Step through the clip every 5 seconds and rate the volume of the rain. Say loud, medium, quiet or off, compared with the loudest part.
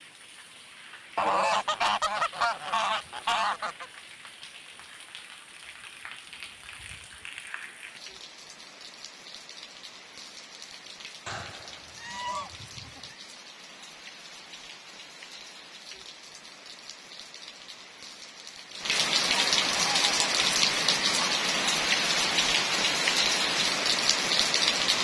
quiet, quiet, quiet, medium, loud.